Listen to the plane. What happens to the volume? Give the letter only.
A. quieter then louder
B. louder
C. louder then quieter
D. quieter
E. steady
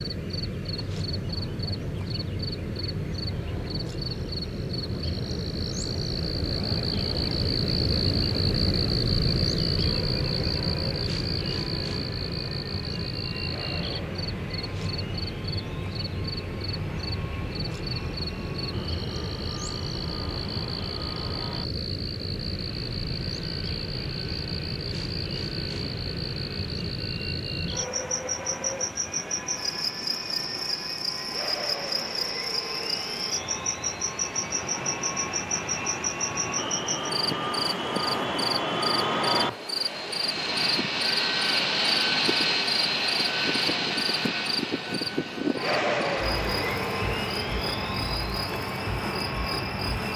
B.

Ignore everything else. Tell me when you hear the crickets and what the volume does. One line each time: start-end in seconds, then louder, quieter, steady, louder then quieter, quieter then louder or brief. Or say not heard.
0.0-50.1 steady.